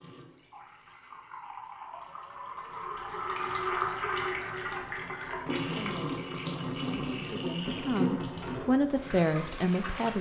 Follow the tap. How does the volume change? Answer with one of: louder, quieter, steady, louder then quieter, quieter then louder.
louder.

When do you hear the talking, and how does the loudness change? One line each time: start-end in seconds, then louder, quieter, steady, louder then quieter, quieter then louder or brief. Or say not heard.
5.7-10.1 louder.